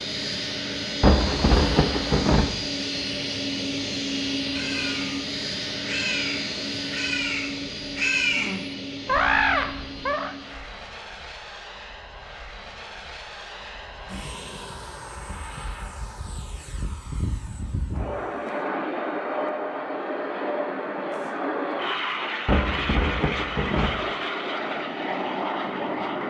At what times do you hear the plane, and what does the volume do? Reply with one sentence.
You can hear the plane from 0.0 to 26.2 s, getting quieter then louder.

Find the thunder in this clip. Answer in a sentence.
You can hear the thunder from 1.0 to 2.5 s and from 22.4 to 23.9 s.